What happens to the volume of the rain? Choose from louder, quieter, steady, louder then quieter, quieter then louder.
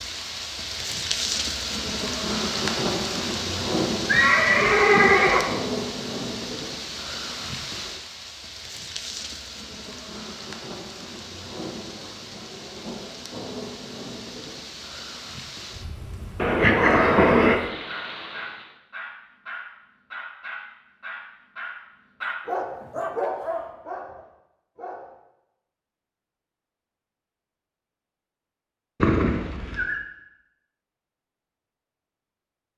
quieter.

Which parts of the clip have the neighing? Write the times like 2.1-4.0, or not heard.
4.0-5.5, 16.4-17.6, 29.0-29.9.